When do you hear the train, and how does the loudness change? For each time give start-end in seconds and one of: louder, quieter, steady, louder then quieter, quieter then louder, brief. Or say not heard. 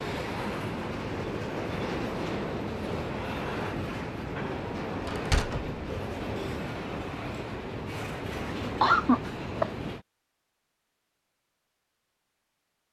0.0-10.1 steady.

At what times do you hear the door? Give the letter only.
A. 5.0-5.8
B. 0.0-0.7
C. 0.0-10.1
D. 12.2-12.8
A.